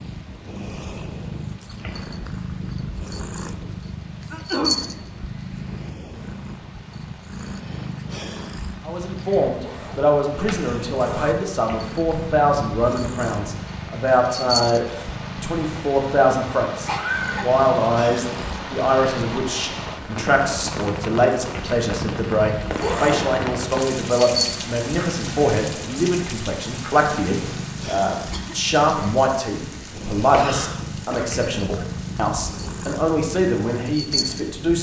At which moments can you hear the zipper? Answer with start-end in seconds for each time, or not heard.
9.6-11.3, 22.7-23.3.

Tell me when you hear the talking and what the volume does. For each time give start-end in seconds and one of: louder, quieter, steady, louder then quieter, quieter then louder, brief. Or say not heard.
8.8-34.7 steady.